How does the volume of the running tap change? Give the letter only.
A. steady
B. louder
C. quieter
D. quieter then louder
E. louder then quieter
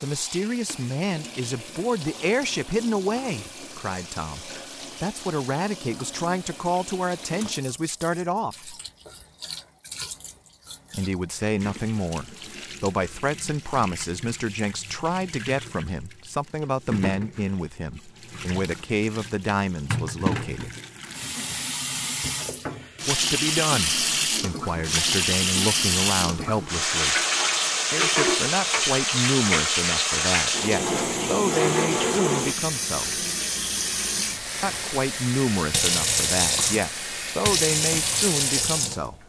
B.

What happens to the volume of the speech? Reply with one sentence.
The volume of the speech stays about the same.